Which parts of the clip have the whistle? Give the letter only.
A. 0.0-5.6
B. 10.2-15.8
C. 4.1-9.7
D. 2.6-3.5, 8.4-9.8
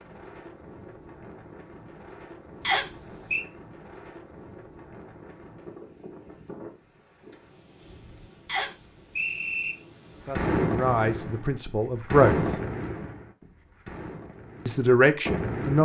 D.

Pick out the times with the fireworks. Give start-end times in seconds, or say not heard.
10.2-15.8.